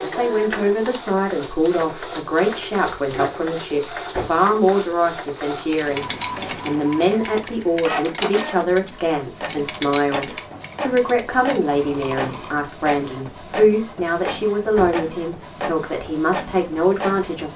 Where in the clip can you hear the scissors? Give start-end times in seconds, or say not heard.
not heard.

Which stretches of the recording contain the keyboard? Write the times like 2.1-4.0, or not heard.
5.7-12.6.